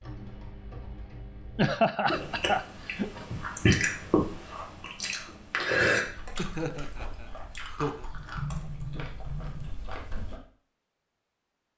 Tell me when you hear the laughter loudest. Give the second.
2 s.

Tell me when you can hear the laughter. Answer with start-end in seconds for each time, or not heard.
1.6-3.2, 6.3-8.1.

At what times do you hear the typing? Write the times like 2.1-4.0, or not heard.
0.0-1.8, 8.1-9.7.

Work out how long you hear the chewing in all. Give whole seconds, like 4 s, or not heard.
8 s.